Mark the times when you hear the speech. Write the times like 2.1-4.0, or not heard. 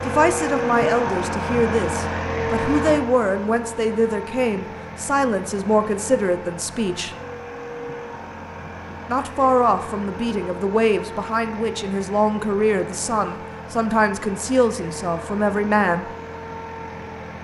0.1-7.2, 9.1-16.1.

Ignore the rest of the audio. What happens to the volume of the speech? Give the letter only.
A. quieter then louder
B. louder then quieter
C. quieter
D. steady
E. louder
D.